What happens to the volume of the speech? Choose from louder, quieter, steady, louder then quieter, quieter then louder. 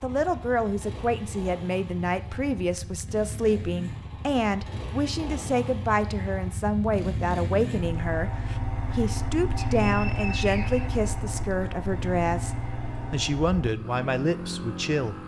steady.